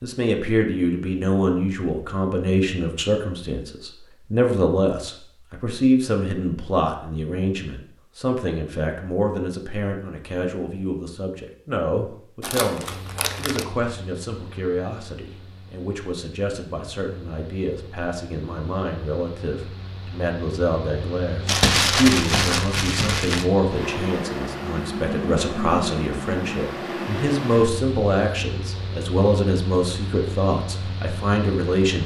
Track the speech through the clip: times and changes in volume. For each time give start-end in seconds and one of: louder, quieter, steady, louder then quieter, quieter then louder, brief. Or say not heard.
0.0-32.0 quieter then louder.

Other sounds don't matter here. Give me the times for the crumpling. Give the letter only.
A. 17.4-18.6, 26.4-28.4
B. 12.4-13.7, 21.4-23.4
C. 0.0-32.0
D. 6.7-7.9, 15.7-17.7
B.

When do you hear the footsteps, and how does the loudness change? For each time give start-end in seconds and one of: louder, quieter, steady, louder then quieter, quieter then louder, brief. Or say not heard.
not heard.